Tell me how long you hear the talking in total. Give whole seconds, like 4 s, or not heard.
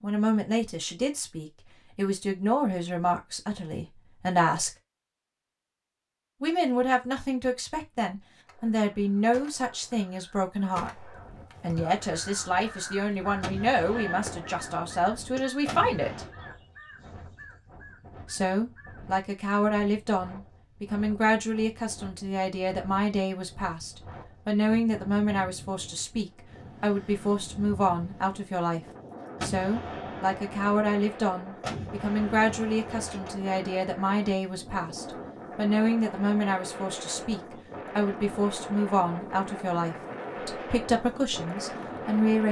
38 s.